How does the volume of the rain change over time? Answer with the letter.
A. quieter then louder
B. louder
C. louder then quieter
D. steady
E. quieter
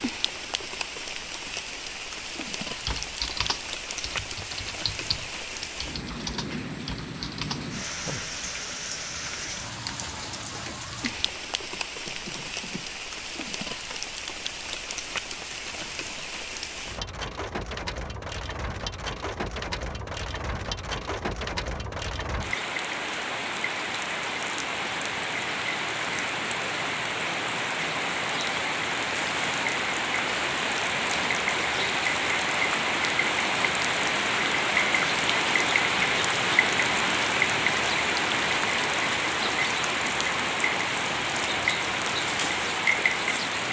B.